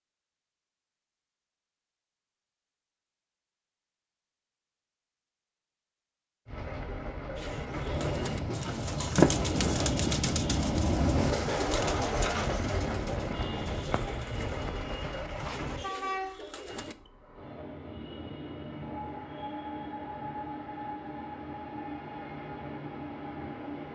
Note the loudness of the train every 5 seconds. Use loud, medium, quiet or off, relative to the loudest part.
off, loud, loud, medium, medium.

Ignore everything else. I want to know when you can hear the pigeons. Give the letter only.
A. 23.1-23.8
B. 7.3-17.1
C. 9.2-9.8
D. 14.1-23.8
B.